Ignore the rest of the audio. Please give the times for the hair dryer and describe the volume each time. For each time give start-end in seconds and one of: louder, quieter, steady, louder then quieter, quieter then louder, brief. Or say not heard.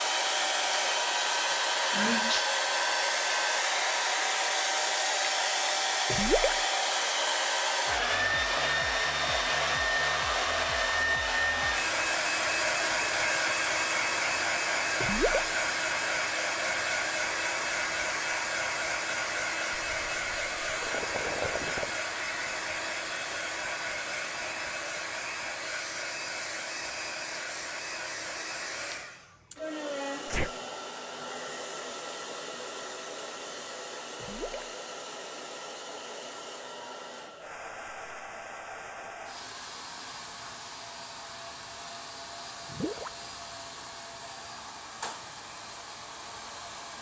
0.0-46.9 quieter.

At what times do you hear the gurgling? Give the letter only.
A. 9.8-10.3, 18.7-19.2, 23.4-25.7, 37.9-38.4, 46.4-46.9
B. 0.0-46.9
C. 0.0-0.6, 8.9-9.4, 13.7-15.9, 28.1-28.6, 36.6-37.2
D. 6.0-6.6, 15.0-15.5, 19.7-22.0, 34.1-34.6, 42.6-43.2
D.